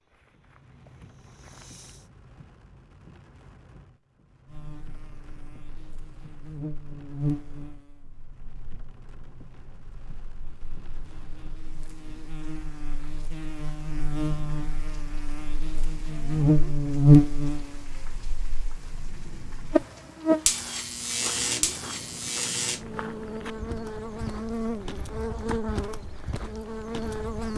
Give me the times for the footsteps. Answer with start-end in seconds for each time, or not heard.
0.0-2.0, 21.1-27.5.